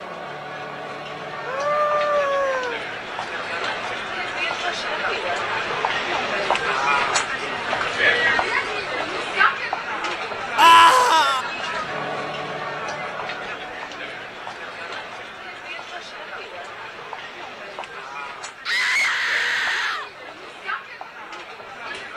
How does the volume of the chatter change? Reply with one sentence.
The volume of the chatter goes up, then down.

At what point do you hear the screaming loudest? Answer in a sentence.
The volume of the screaming peaks at 11 seconds.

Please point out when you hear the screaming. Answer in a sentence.
The screaming can be heard from 1.4 to 2.9 s, from 10.6 to 11.4 s and from 18.6 to 20.1 s.